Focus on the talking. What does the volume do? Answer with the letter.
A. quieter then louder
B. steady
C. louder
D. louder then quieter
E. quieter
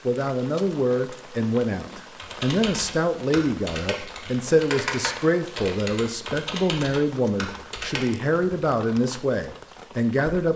B.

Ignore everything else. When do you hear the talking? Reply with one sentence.
You can hear the talking from 0.1 to 10.5 s.